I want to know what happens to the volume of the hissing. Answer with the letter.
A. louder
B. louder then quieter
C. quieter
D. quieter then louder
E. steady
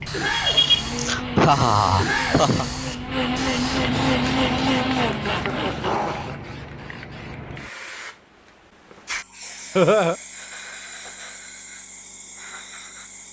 C.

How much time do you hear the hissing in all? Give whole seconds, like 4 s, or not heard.
13 s.